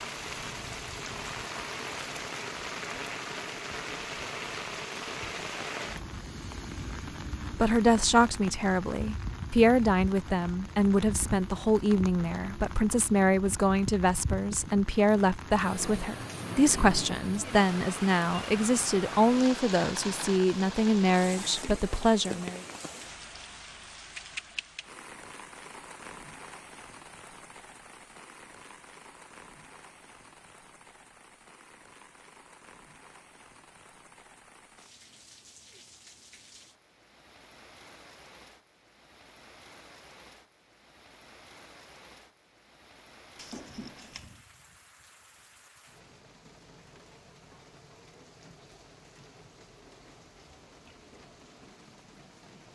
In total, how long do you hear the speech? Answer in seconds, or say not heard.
15 s.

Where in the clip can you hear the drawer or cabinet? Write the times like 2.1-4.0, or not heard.
43.4-44.5.